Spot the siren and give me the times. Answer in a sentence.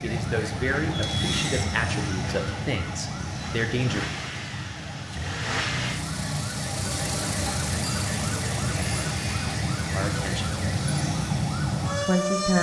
The siren can be heard from 0.0 to 12.5 s.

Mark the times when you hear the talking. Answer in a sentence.
You can hear the talking from 0.0 to 4.0 s, from 9.9 to 10.6 s and from 12.0 to 12.5 s.